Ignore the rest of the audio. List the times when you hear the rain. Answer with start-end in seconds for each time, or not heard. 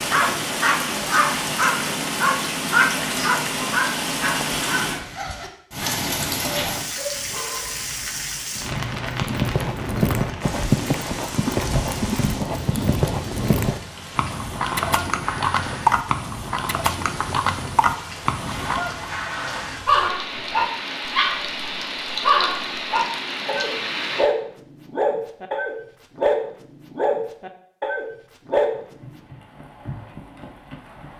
0.0-24.3.